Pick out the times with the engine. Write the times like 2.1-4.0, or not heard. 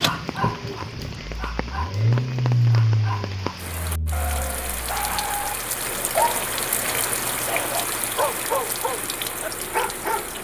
0.0-10.4.